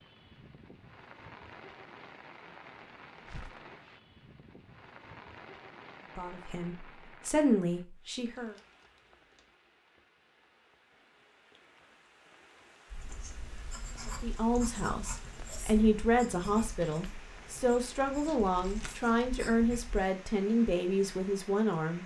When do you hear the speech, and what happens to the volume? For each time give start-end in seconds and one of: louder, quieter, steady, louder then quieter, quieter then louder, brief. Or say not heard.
6.2-8.6 brief
14.2-22.0 steady.